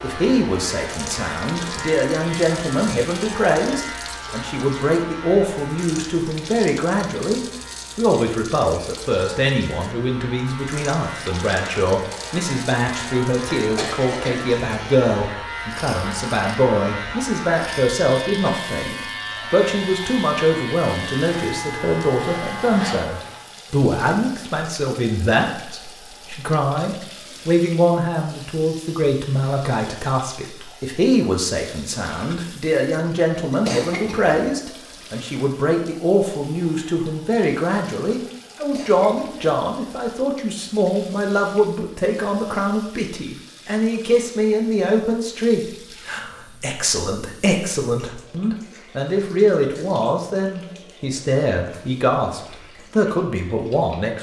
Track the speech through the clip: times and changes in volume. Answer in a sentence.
The speech can be heard from 0.0 to 54.1 s, at a steady volume.